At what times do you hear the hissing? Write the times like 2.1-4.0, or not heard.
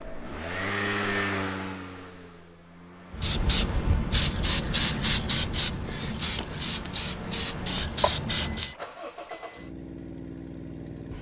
3.1-8.8.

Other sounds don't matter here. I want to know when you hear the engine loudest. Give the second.
1 s.